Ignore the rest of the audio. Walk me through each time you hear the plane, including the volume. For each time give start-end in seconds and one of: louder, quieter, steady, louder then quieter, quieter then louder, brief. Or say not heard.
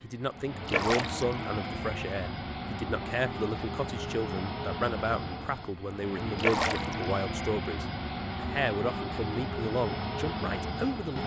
0.0-11.2 steady.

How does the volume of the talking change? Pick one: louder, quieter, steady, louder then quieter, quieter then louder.
steady.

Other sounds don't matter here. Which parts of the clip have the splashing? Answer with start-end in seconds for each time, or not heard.
0.7-1.3, 6.3-7.0.